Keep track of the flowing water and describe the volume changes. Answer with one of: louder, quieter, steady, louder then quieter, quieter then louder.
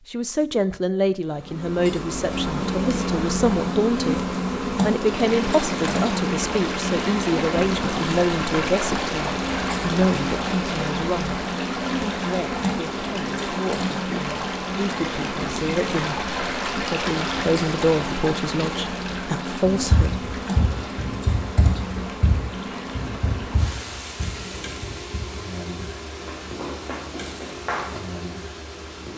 quieter.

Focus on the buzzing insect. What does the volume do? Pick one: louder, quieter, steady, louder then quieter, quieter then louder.
quieter.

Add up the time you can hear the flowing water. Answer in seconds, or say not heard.
24 s.